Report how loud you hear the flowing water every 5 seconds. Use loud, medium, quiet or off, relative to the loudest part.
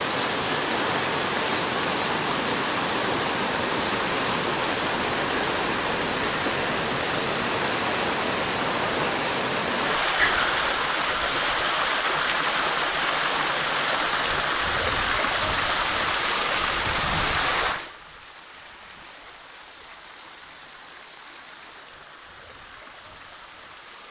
loud, loud, loud, loud, quiet.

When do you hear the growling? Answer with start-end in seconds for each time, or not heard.
10.2-10.6.